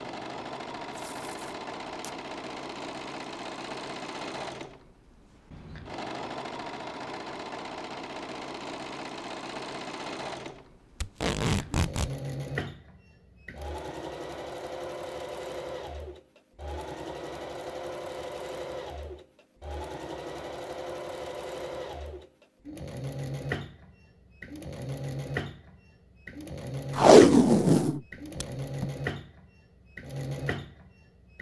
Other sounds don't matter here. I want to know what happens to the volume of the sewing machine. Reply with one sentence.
The loudness of the sewing machine stays about the same.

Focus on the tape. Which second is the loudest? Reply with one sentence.
The volume of the tape peaks at 27 seconds.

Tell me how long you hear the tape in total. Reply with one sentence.
The tape can be heard for 4 seconds in total.